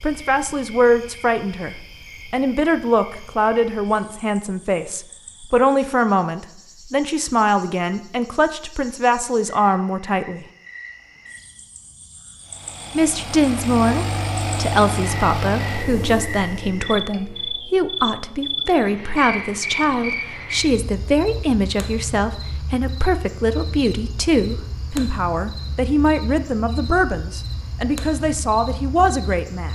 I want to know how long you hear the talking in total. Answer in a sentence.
You can hear the talking for 27 seconds altogether.